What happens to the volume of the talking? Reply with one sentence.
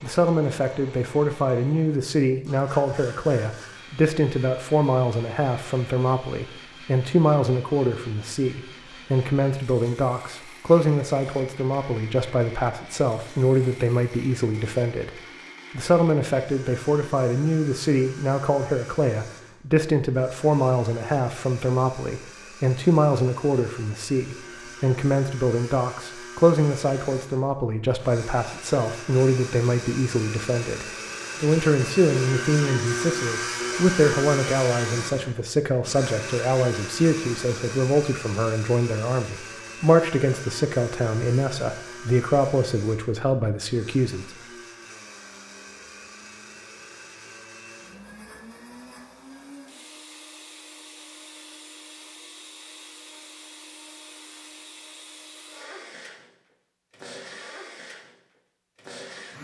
The volume of the talking stays about the same.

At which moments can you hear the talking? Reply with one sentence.
The talking can be heard from 0.0 to 44.4 s.